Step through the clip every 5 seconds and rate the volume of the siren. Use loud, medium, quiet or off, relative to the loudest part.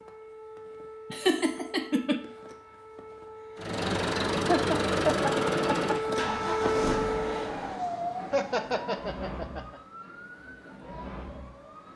quiet, loud, quiet.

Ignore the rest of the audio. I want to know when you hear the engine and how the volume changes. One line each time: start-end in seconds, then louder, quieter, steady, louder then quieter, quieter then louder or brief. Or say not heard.
3.5-11.9 quieter.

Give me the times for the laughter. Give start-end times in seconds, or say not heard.
1.1-2.2, 4.5-6.0, 8.3-9.8.